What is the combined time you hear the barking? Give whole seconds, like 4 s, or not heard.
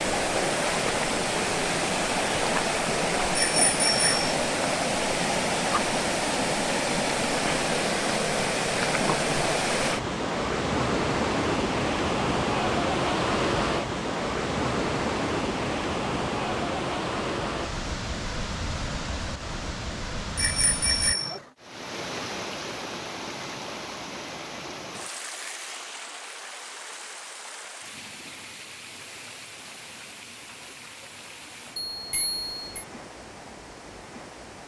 not heard.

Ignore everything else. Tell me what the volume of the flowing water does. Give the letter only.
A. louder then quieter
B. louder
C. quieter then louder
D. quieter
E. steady
D.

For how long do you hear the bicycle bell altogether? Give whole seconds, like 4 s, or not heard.
3 s.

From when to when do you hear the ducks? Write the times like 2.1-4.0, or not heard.
not heard.